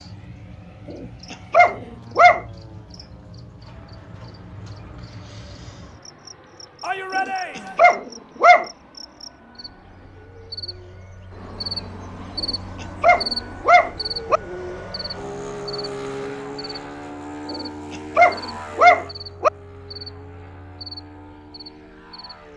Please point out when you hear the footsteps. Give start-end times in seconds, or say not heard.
not heard.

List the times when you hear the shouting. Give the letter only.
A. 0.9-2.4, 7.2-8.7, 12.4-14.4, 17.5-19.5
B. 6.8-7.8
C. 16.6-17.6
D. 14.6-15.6
B.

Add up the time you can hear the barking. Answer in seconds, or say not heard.
7 s.